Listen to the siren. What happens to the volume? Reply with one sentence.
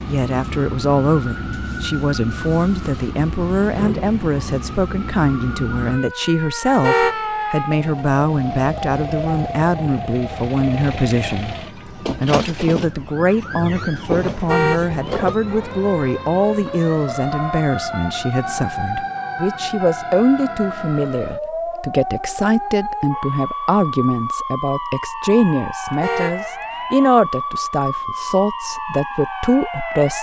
The loudness of the siren stays about the same.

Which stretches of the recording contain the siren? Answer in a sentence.
You can hear the siren from 0.0 to 30.1 s.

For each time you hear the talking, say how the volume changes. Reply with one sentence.
You can hear the talking from 0.1 to 30.1 s, at a steady volume.